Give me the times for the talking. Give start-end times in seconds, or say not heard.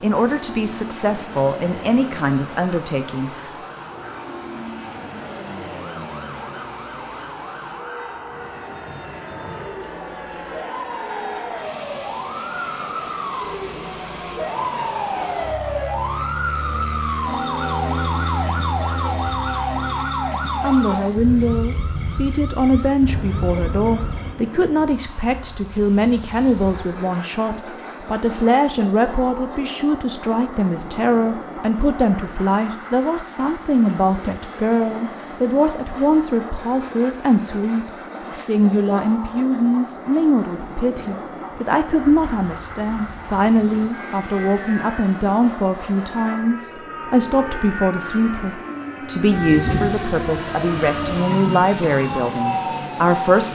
0.0-3.5, 20.6-53.5.